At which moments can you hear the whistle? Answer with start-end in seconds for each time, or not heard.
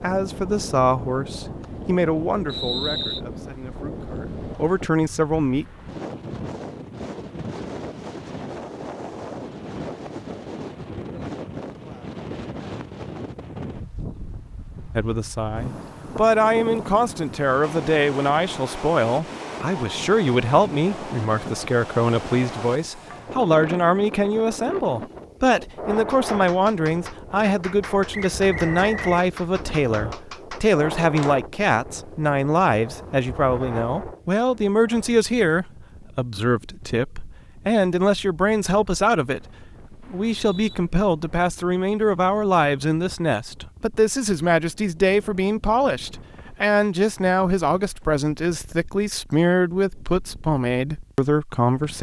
2.5-3.2, 28.1-29.0, 40.0-40.8.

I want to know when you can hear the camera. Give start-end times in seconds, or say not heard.
not heard.